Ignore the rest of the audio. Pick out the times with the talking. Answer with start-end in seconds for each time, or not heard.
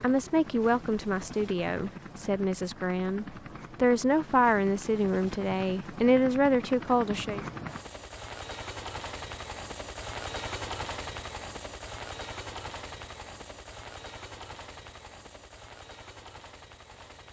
0.0-7.5.